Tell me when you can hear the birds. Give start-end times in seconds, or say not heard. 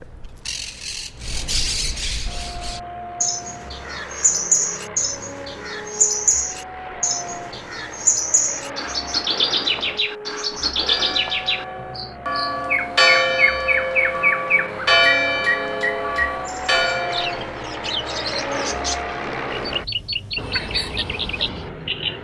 0.0-22.1.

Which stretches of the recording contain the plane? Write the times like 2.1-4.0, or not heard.
2.2-22.1.